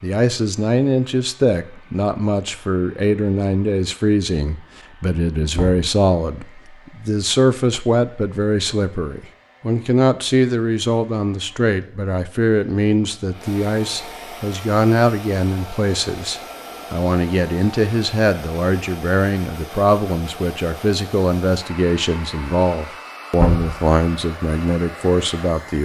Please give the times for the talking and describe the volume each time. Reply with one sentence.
You can hear the talking from 0.0 to 25.7 s, at a steady volume.